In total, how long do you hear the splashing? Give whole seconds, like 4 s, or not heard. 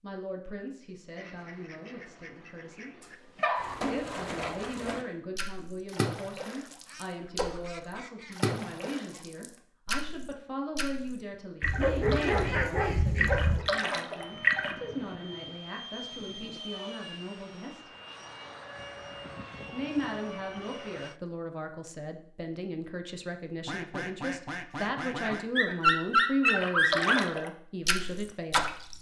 14 s.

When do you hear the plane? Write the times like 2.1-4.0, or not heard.
14.2-21.2.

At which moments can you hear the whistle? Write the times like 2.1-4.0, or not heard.
not heard.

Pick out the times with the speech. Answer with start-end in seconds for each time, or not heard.
0.0-2.9, 3.9-17.9, 19.7-28.6.